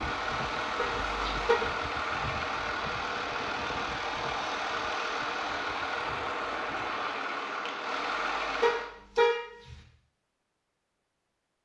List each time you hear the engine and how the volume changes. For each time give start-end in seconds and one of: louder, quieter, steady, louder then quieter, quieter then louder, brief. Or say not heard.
0.0-8.9 steady.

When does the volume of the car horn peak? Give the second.
9 s.